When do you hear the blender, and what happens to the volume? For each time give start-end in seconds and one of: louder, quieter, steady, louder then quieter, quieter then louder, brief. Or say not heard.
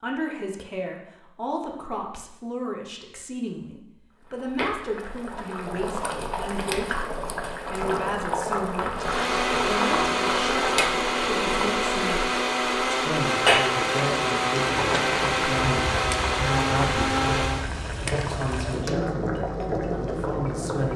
8.9-17.7 steady.